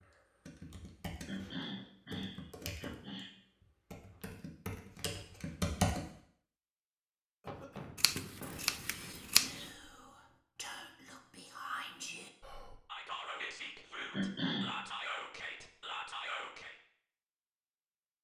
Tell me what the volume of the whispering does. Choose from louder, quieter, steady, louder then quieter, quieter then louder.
louder.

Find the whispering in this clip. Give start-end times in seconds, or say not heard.
8.6-16.8.